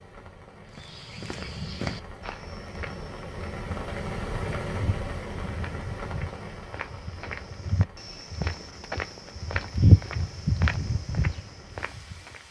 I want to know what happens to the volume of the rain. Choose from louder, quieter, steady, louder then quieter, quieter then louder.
louder then quieter.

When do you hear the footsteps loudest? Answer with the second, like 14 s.
10 s.